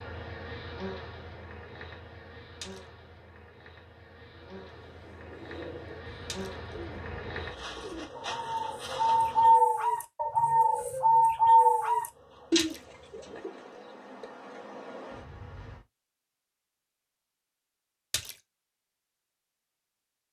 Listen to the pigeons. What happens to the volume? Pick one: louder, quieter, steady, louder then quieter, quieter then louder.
louder.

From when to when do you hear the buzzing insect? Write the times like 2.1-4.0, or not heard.
0.0-9.6, 12.1-15.8.